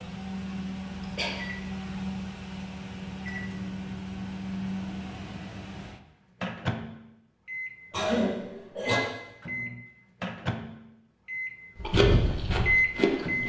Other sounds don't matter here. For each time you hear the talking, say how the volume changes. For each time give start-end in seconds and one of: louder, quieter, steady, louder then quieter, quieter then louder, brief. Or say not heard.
not heard.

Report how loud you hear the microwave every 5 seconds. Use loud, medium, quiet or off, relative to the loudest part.
medium, medium, loud.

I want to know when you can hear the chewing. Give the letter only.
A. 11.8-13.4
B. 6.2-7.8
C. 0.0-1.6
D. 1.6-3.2
A.